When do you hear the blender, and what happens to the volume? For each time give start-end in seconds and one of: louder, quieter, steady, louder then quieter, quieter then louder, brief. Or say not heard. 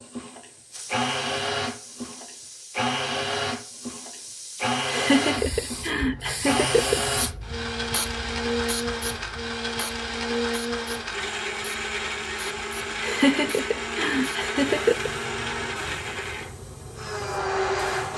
0.0-18.1 steady.